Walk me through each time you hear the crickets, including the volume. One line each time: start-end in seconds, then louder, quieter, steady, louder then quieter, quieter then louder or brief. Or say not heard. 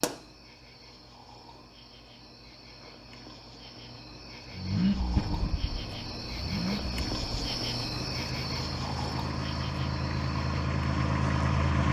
0.0-11.8 louder then quieter.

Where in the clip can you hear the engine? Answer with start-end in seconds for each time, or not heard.
4.5-11.8.